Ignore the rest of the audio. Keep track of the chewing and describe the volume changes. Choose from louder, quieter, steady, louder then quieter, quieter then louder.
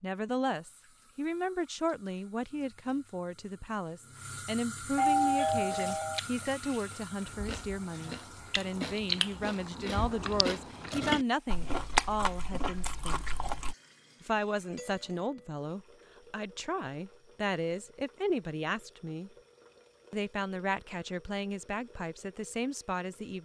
louder.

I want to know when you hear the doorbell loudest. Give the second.
5 s.